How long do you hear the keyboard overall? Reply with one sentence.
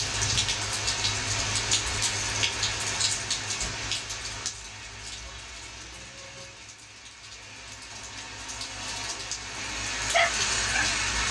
You can't hear the keyboard here.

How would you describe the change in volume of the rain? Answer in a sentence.
The volume of the rain goes down, then up.